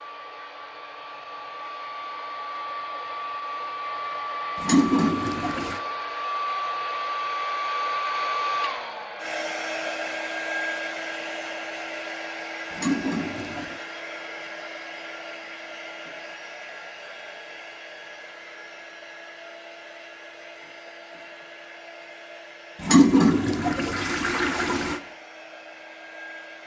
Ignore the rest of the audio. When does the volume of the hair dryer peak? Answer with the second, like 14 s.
8 s.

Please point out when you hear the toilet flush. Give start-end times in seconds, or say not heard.
4.6-5.8, 12.7-13.8, 22.8-25.0.